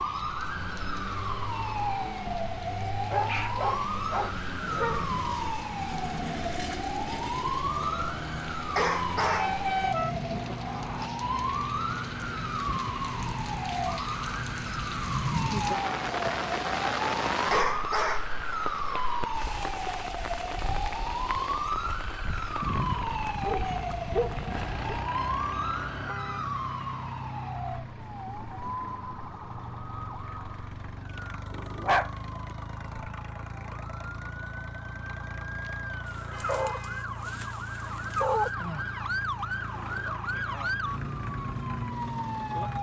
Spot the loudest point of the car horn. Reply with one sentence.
The loudest moment of the car horn is at 10 seconds.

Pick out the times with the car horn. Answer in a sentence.
The car horn can be heard from 9.2 to 11.1 s, from 24.5 to 26.5 s and from 35.6 to 37.0 s.